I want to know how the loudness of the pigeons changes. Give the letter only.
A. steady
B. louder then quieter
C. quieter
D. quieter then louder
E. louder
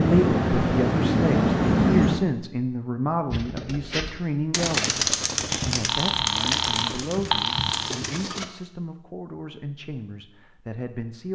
B.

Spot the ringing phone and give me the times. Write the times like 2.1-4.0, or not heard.
5.8-8.0.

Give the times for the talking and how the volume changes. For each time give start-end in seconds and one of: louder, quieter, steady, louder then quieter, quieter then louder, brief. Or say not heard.
0.0-11.3 quieter.